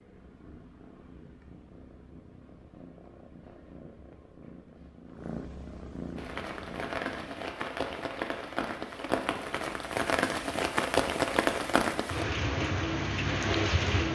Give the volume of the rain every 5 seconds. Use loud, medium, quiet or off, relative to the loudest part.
off, medium, loud.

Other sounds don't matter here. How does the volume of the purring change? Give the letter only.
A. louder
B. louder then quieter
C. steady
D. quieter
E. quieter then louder
A.